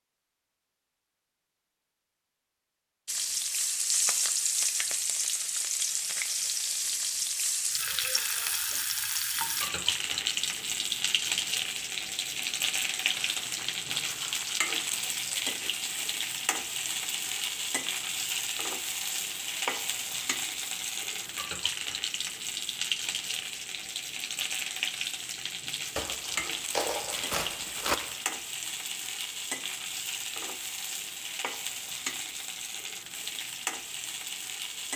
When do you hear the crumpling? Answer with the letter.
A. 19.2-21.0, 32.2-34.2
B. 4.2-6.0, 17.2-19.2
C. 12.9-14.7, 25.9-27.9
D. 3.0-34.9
C.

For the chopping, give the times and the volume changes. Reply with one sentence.
The chopping can't be heard in this clip.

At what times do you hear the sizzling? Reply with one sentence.
The sizzling can be heard from 3.0 to 34.9 s.